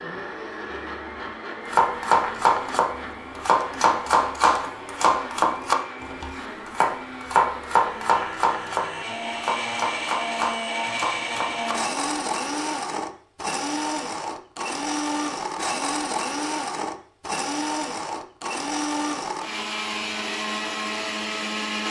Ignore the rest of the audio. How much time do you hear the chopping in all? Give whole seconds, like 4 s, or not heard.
10 s.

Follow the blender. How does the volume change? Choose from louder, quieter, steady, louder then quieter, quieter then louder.
louder.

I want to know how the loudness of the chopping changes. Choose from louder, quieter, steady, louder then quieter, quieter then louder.
quieter.